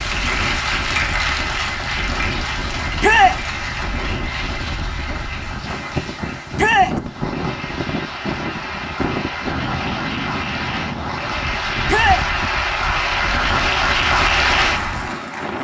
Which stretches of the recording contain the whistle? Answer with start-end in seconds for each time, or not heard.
not heard.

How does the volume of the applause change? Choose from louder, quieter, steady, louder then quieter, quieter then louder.
quieter then louder.